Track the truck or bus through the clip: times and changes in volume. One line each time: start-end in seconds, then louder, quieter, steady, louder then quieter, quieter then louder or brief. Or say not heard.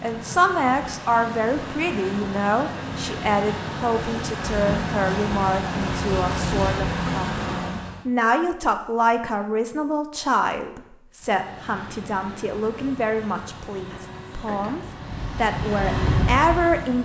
0.0-8.1 louder
11.2-16.9 louder.